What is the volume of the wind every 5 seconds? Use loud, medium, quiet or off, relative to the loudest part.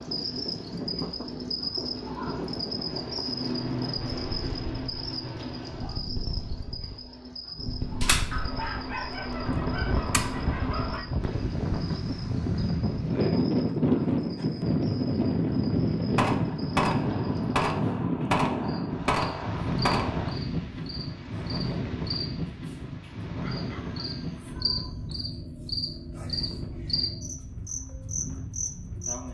medium, medium, loud, loud, medium, quiet.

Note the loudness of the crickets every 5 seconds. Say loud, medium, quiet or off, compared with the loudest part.
loud, medium, medium, medium, medium, loud.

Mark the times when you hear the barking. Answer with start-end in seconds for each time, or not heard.
8.3-11.1, 23.4-25.1.